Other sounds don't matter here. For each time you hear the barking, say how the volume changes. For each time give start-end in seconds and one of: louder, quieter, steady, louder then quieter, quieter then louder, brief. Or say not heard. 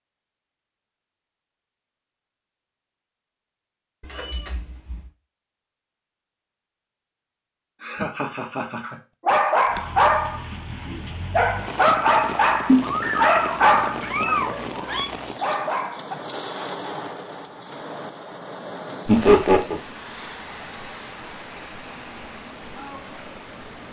9.2-16.1 quieter.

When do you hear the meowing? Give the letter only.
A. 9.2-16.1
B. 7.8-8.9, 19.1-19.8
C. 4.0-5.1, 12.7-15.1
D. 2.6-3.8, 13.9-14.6
C.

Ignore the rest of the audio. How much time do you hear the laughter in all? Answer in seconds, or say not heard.
2 s.